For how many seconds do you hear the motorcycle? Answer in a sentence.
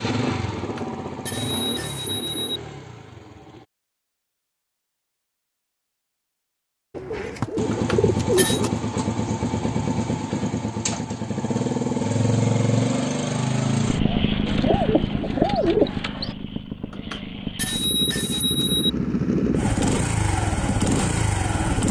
You can hear the motorcycle for 18 seconds altogether.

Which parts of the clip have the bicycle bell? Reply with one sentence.
You can hear the bicycle bell from 0.6 to 2.5 s, from 7.7 to 8.6 s and from 16.9 to 18.9 s.